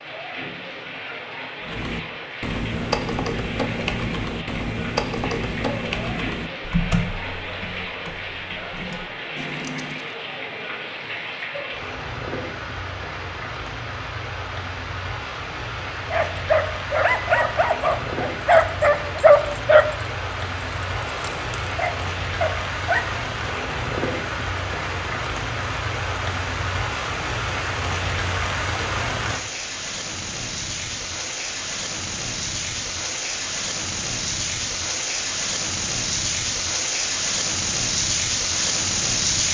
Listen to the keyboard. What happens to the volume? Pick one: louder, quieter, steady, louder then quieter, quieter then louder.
quieter.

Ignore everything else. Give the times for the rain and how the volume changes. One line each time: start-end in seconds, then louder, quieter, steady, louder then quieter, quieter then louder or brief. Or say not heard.
0.0-39.5 louder.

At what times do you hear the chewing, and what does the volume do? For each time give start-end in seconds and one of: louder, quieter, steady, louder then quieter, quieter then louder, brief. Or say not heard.
not heard.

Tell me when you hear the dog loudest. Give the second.
19 s.